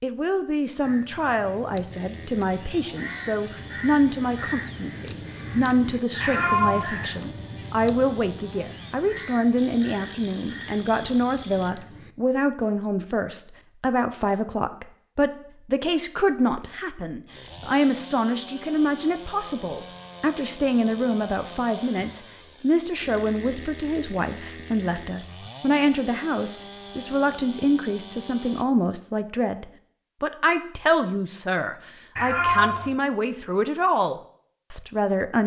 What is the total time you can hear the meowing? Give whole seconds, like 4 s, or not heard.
2 s.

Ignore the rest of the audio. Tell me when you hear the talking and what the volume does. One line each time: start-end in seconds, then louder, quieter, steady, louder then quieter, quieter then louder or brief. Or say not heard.
0.0-35.4 steady.